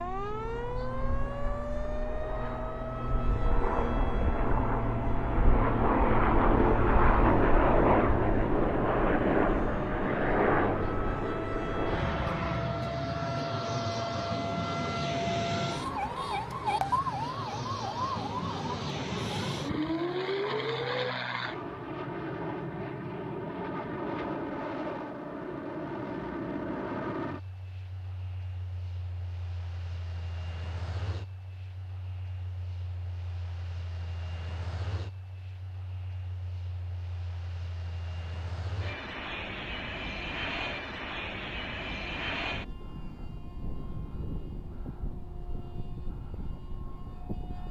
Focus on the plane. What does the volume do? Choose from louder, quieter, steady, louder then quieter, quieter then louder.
quieter then louder.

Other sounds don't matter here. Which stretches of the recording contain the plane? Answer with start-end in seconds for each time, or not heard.
0.0-47.6.